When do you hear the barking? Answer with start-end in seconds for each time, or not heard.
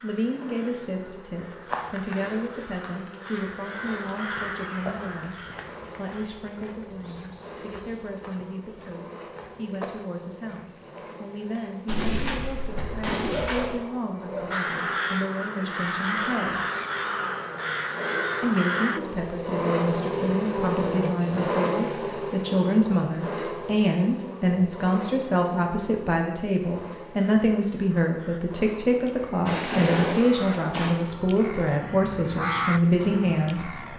12.8-14.6.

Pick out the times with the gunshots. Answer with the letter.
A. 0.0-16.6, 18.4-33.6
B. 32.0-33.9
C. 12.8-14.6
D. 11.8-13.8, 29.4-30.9
D.